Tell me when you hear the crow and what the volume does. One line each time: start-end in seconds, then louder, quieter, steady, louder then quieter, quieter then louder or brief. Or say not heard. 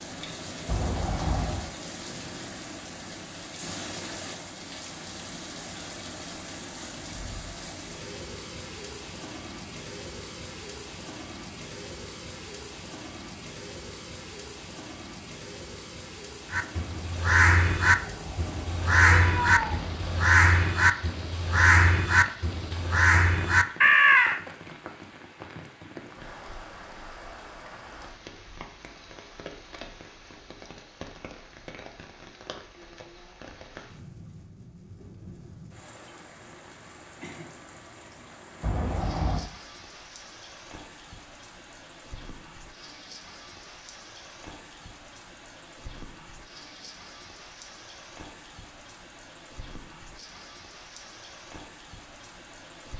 16.5-24.4 steady.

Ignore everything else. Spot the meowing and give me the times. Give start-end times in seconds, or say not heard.
0.7-1.7, 17.8-20.3, 38.6-39.5.